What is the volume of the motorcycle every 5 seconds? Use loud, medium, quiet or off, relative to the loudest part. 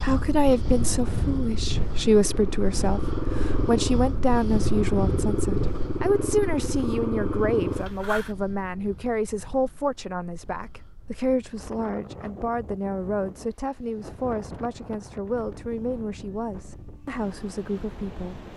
loud, loud, off, off.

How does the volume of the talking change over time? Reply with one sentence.
The loudness of the talking goes down.